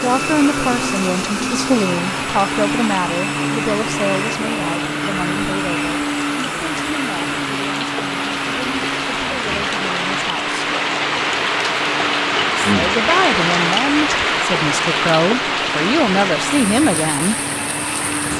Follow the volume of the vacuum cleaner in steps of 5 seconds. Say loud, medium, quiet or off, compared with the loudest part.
loud, loud, medium, medium.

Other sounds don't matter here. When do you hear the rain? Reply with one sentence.
You can hear the rain from 0.0 to 18.3 s.